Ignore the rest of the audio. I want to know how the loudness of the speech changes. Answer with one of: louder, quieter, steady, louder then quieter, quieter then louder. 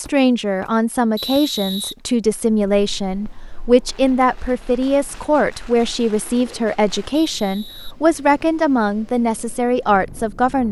steady.